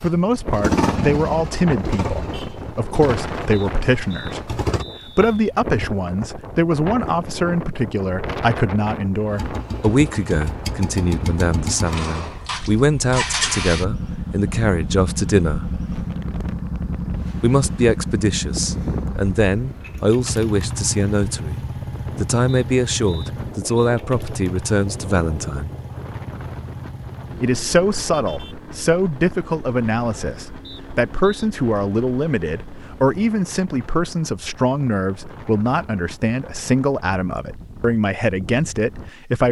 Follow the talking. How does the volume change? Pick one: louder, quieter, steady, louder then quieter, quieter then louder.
steady.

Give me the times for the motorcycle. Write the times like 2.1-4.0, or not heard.
0.0-4.8, 9.2-33.2.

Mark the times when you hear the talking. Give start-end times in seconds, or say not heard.
0.0-15.8, 17.4-21.6, 22.2-25.7, 27.4-39.4.